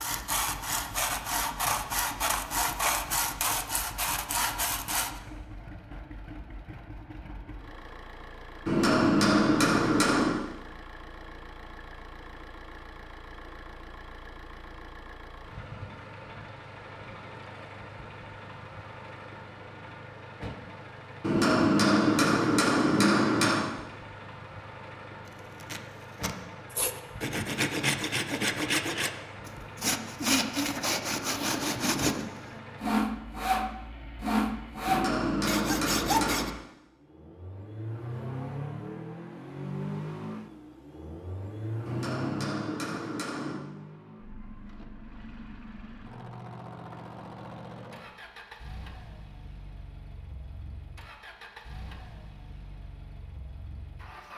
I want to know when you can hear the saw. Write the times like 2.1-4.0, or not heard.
0.0-5.2, 26.7-36.5.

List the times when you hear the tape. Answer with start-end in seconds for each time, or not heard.
25.2-26.4.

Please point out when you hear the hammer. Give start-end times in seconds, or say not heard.
8.7-10.4, 21.2-23.7, 34.9-36.5, 41.9-43.6.